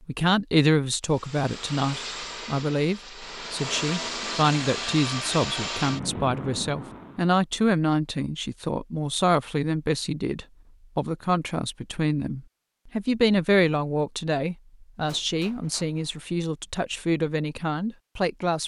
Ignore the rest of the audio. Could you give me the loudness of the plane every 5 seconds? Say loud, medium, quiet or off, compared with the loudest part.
loud, loud, off, off.